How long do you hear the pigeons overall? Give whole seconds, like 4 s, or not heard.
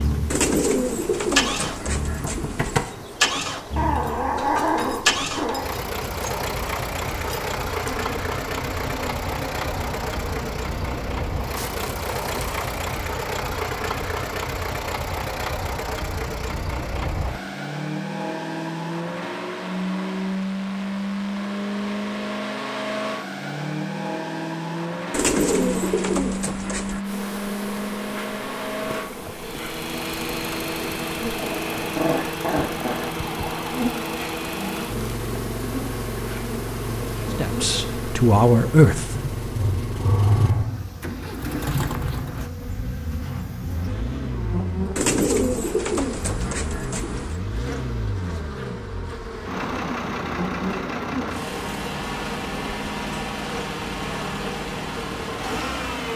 7 s.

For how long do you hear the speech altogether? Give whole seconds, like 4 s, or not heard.
2 s.